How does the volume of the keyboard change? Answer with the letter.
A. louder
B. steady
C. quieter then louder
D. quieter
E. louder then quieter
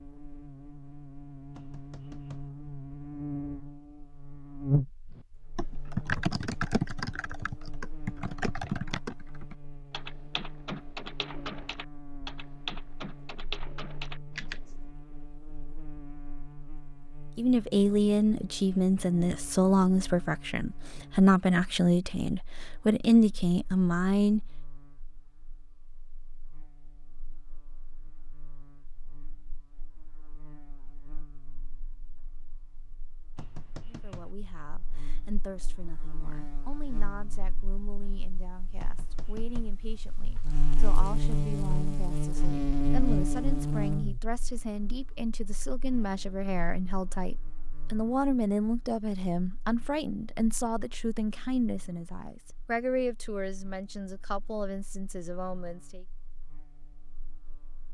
D.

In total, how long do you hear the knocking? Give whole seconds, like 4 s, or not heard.
3 s.